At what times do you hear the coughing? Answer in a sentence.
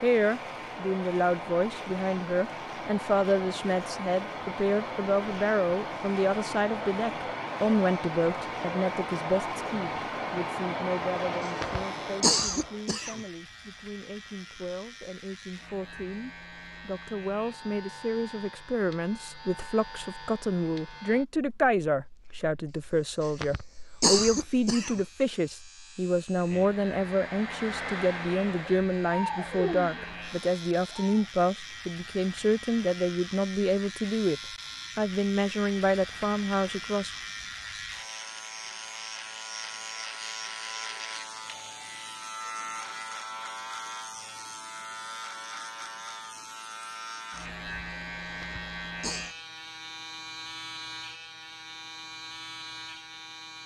The coughing can be heard from 11.6 to 13.2 s, from 23.4 to 25.0 s and from 48.4 to 49.4 s.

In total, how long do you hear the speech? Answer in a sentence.
You can hear the speech for 37 seconds altogether.